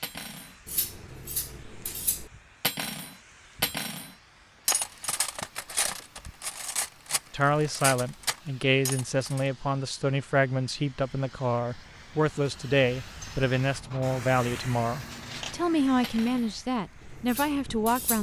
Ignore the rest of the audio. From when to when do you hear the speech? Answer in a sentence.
You can hear the speech from 7.3 to 18.1 s.